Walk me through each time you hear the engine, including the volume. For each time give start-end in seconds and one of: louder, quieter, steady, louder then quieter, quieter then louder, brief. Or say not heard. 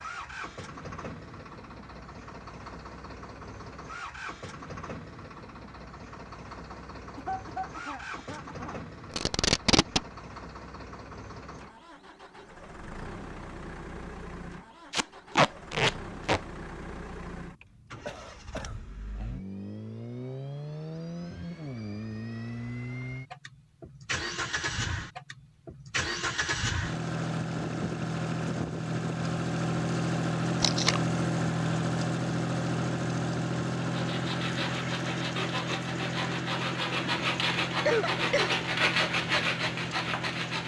0.0-40.6 louder.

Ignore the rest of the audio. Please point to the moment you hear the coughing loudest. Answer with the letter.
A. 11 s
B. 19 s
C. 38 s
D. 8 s
C.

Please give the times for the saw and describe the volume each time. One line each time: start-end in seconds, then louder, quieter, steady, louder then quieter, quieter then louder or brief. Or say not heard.
33.8-40.6 louder.